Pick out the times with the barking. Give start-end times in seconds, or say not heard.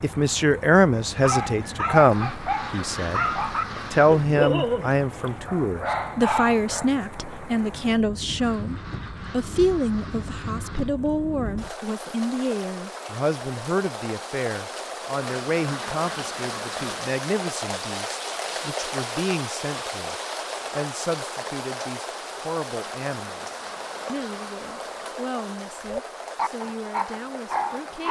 1.2-6.9, 25.9-28.0.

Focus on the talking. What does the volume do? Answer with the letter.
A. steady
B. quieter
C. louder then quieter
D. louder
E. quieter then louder
B.